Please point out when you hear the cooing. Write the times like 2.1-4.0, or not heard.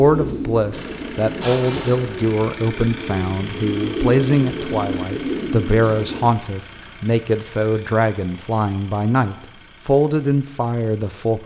0.0-6.3.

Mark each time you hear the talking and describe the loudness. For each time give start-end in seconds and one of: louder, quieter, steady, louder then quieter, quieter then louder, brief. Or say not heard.
0.0-11.4 steady.